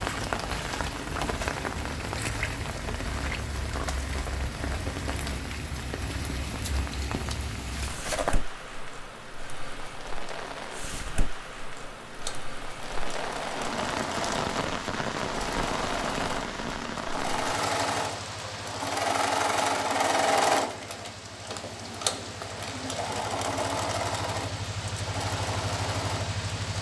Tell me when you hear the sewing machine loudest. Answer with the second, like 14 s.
20 s.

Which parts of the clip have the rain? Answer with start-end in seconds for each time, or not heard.
0.0-26.7.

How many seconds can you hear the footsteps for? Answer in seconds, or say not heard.
not heard.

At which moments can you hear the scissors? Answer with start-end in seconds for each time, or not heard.
7.7-8.4.